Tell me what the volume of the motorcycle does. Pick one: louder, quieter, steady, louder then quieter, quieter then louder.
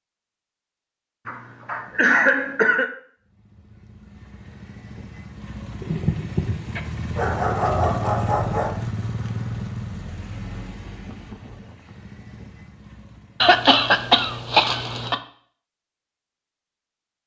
louder then quieter.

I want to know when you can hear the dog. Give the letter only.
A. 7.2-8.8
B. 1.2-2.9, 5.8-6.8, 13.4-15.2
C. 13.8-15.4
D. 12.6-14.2
A.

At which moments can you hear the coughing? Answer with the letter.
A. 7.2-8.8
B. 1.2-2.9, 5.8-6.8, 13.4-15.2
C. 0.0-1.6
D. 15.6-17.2
B.